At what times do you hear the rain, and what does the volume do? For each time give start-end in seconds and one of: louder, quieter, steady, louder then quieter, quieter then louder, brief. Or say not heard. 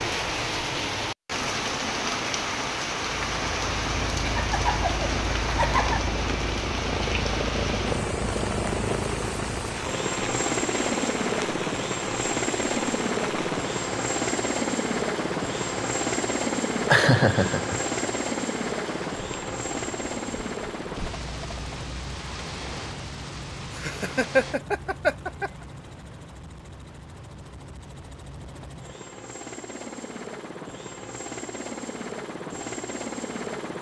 0.0-24.6 quieter.